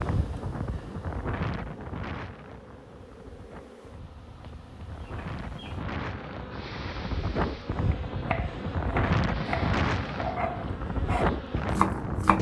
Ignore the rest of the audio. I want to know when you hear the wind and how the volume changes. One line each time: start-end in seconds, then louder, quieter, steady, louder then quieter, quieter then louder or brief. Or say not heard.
0.0-12.3 quieter then louder.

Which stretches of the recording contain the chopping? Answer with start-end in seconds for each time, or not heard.
7.8-12.3.